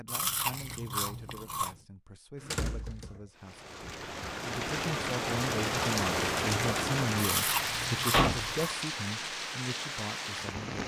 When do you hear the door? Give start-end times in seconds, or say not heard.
2.4-3.1, 8.1-8.5.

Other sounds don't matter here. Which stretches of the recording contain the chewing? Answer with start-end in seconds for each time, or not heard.
0.1-1.8, 7.2-8.7.